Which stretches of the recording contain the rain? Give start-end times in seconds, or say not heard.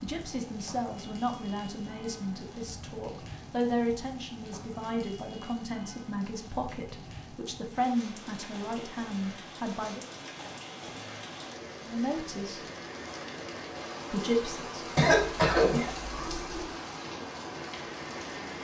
0.0-18.5.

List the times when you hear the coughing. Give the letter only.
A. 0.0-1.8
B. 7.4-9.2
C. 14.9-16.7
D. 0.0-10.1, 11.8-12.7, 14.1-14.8
C.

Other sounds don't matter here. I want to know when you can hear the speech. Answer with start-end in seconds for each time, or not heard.
0.0-10.1, 11.8-12.7, 14.1-14.8.